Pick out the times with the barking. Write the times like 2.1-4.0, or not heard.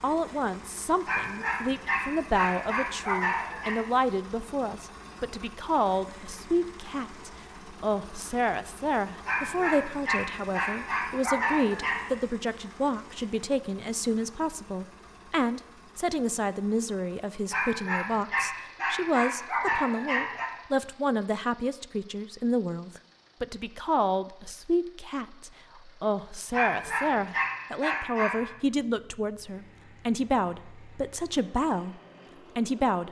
1.1-3.8, 9.2-12.1, 17.5-20.5, 26.5-28.4.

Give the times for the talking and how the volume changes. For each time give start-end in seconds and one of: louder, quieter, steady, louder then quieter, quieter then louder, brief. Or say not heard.
0.0-33.0 steady.